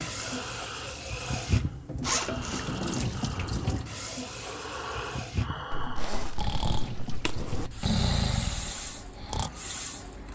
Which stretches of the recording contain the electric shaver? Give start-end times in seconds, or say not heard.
not heard.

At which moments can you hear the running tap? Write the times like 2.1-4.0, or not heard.
0.0-10.2.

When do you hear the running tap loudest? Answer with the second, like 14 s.
3 s.